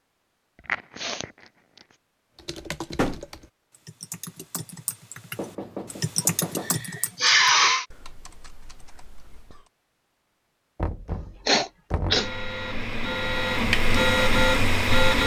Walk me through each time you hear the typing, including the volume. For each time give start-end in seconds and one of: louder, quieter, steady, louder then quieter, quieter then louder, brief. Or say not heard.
2.4-9.7 louder then quieter.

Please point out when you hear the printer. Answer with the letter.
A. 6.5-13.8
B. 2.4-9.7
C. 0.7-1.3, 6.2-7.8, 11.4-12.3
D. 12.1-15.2
D.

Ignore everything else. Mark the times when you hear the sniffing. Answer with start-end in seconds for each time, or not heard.
0.7-1.3, 6.2-7.8, 11.4-12.3.